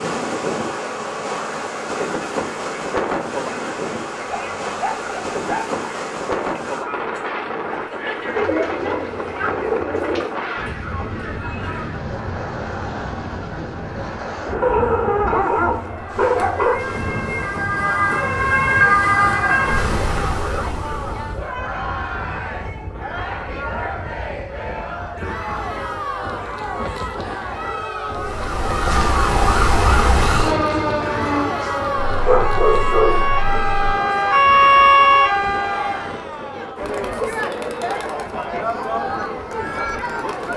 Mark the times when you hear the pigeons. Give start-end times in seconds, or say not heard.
8.3-10.3.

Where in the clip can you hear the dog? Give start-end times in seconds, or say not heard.
4.2-5.7, 14.6-16.8, 32.0-34.0.